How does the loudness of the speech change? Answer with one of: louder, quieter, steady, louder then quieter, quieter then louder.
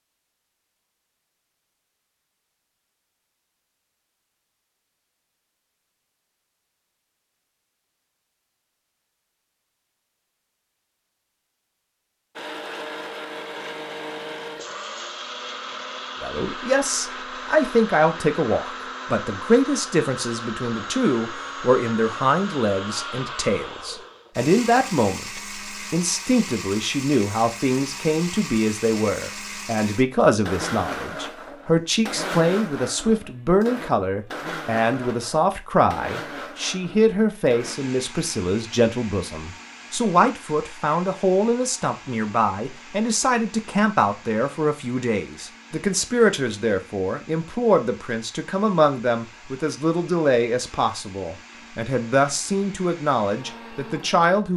steady.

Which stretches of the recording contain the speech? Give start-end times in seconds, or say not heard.
16.2-54.5.